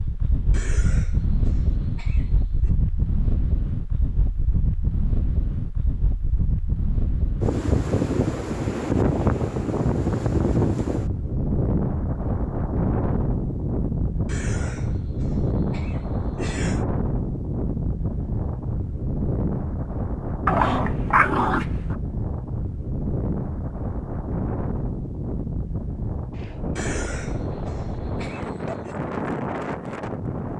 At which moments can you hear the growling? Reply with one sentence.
The growling can be heard from 20.4 to 21.9 s.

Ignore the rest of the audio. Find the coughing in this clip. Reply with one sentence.
The coughing can be heard from 0.5 to 2.7 s, from 14.2 to 16.9 s and from 26.8 to 28.9 s.